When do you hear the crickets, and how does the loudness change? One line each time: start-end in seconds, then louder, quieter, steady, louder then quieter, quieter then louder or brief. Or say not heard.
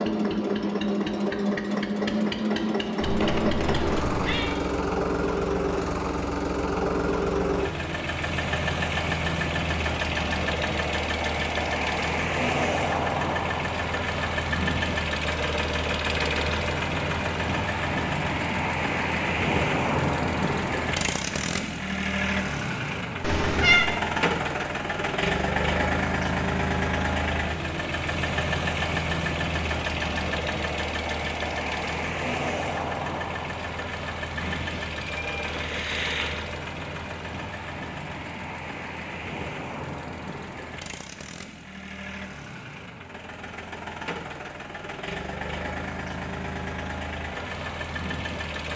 not heard.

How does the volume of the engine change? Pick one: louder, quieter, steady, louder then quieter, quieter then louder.
quieter.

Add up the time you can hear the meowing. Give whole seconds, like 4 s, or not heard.
4 s.